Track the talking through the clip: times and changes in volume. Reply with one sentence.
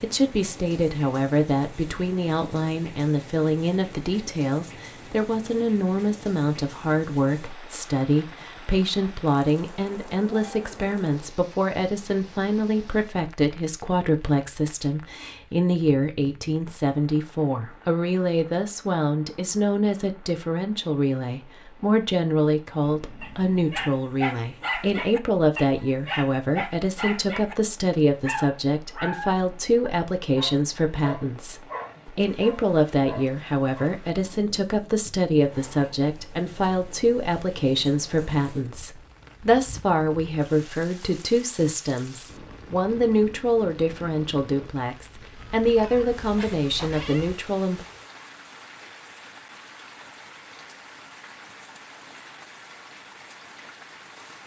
You can hear the talking from 0.0 to 47.8 s, at a steady volume.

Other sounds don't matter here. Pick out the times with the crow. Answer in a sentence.
You can't hear the crow here.